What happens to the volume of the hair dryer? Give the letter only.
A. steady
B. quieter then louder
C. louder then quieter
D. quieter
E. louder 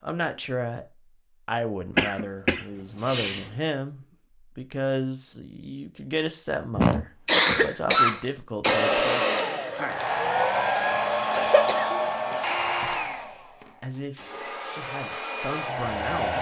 B.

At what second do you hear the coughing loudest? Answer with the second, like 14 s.
7 s.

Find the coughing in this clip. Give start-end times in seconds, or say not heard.
1.9-3.5, 6.8-8.8, 11.3-12.4.